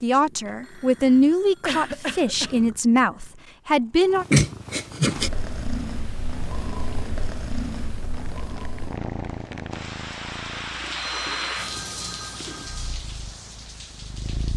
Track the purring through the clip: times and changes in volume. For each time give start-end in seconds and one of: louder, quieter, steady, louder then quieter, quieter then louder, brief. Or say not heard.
0.0-14.5 louder then quieter.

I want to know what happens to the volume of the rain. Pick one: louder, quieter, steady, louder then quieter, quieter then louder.
louder then quieter.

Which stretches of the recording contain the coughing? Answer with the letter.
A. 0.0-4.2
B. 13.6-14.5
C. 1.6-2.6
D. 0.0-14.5
C.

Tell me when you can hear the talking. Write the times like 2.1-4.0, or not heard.
0.0-4.2.